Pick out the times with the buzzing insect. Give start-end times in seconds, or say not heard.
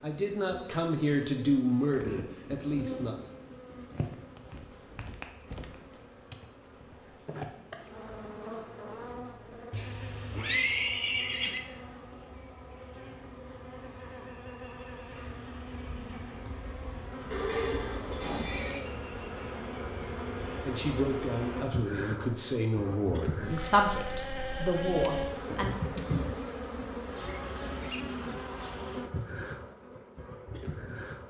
0.0-31.2.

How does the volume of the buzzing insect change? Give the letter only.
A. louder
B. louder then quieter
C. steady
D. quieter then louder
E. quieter
A.